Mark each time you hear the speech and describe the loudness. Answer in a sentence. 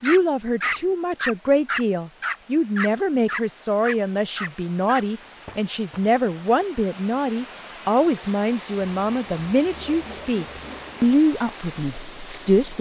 You can hear the speech from 0.0 to 12.7 s, at a steady volume.